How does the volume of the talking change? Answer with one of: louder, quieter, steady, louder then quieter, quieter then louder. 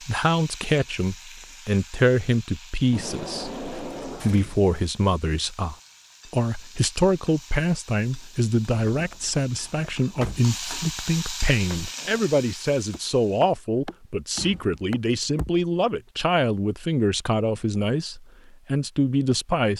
steady.